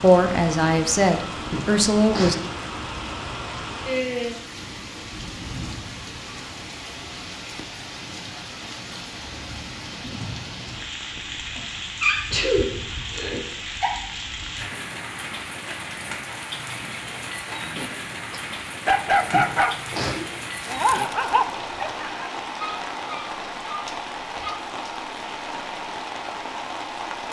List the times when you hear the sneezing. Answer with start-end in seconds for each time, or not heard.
1.4-2.5, 11.6-13.9, 19.2-20.2.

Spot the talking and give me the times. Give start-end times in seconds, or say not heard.
0.0-2.4.